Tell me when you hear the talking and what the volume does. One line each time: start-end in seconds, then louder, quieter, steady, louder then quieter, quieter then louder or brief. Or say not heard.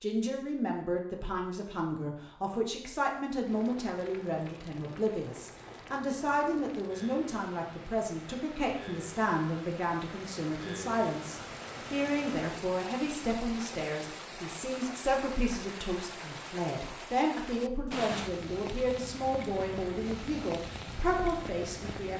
0.0-22.1 steady.